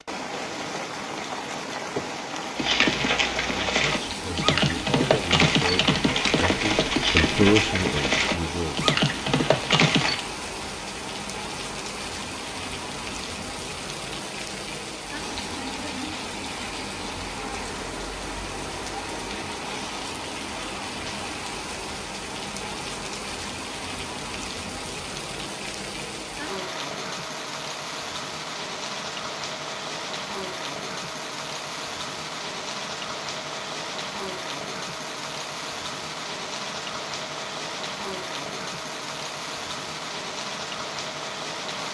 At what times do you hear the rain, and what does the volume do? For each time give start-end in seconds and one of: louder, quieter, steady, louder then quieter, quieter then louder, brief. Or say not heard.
0.0-41.8 steady.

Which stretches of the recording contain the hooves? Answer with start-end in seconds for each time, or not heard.
2.5-10.2.